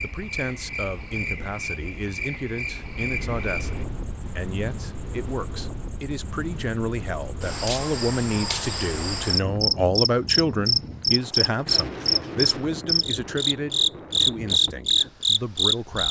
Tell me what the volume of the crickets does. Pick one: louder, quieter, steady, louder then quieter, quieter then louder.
quieter then louder.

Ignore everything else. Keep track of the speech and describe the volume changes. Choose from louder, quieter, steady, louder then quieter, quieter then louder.
louder then quieter.